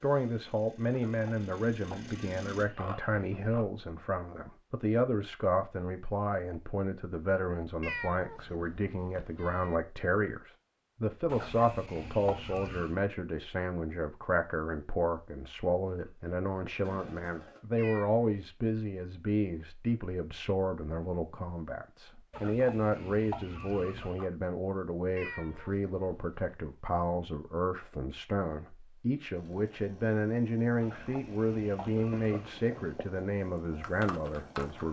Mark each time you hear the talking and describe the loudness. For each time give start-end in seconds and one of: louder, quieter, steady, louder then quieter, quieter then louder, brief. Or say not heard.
0.0-34.8 steady.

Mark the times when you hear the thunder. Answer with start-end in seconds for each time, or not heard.
not heard.